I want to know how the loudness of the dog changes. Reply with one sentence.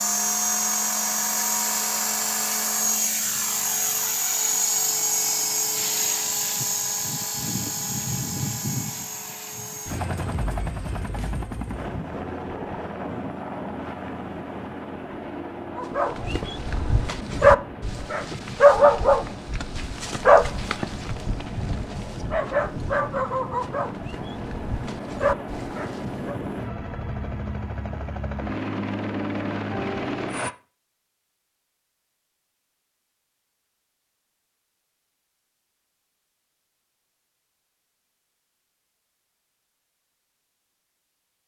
The volume of the dog goes down.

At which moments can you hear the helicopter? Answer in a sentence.
You can hear the helicopter from 0.0 to 30.6 s.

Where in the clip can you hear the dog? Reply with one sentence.
You can hear the dog from 15.8 to 26.4 s.